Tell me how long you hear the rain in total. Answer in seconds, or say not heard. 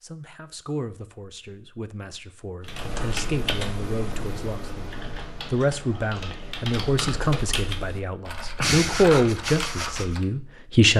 not heard.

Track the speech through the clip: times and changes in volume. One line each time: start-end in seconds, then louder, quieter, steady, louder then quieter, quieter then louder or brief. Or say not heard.
0.0-10.9 louder.